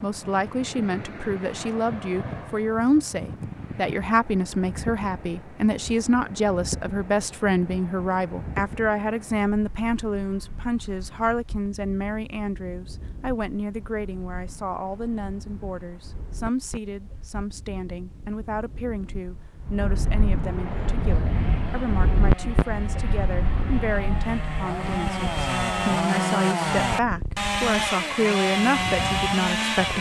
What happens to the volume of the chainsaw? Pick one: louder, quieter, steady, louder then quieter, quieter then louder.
louder.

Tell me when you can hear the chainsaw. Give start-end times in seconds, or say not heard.
20.6-29.9.